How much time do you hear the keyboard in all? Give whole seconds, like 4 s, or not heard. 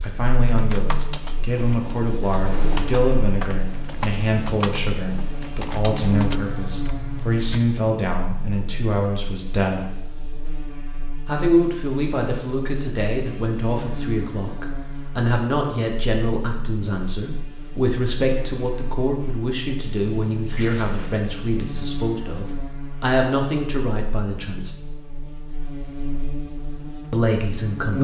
7 s.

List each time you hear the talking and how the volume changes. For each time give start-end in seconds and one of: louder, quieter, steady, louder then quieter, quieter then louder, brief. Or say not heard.
0.0-9.9 steady
11.2-24.7 steady
27.1-27.9 brief.